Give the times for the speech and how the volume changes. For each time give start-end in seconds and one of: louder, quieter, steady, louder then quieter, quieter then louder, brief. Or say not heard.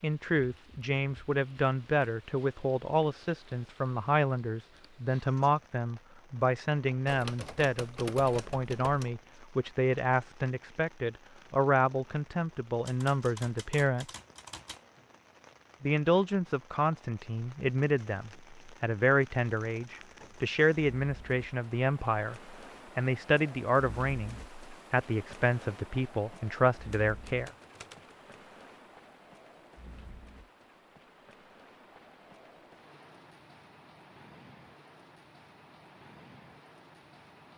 0.0-14.2 steady
15.8-27.5 steady.